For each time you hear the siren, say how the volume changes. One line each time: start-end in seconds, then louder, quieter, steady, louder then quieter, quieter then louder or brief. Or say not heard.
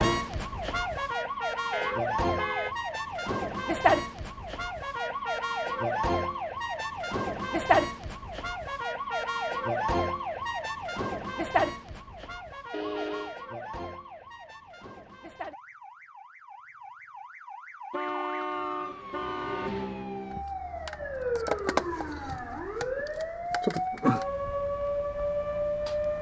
0.0-26.1 quieter then louder.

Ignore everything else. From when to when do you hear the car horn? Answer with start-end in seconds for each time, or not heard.
1.7-2.8, 12.7-13.3, 17.9-19.7.